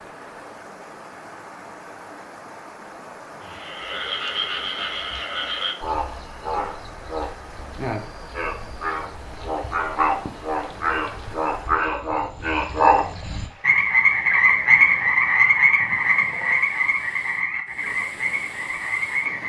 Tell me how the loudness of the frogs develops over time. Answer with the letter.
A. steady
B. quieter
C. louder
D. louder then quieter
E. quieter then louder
D.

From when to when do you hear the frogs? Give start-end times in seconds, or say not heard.
3.4-19.4.